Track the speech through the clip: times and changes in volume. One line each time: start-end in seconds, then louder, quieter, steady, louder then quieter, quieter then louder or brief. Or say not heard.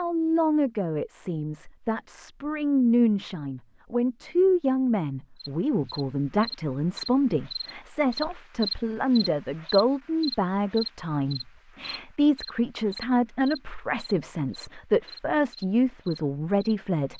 0.0-17.1 steady.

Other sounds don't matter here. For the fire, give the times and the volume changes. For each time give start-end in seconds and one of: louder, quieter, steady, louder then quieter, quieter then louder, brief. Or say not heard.
not heard.